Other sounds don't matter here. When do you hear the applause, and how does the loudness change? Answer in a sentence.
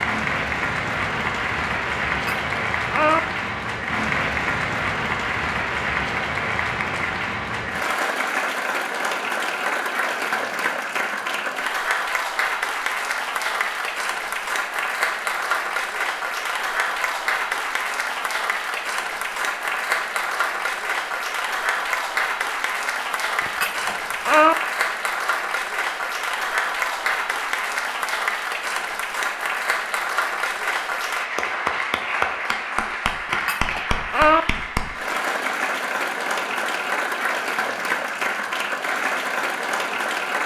You can hear the applause from 0.0 to 40.4 s, at a steady volume.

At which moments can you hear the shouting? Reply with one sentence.
The shouting can't be heard in this clip.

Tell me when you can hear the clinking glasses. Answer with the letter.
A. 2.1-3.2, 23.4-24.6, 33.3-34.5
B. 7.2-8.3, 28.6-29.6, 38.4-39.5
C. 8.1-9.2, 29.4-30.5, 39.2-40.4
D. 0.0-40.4
A.